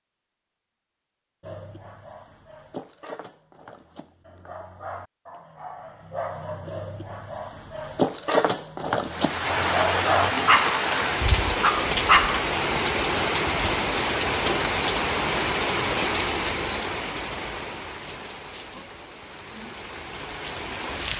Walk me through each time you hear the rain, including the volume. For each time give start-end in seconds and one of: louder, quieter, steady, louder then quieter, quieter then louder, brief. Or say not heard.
9.1-21.1 quieter.